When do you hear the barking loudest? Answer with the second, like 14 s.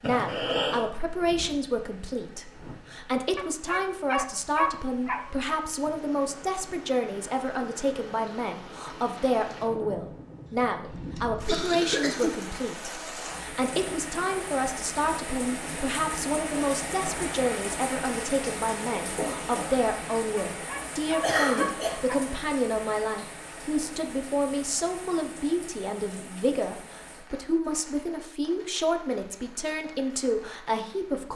5 s.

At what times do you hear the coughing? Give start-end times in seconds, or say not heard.
0.0-0.8, 10.4-12.3, 21.2-22.1.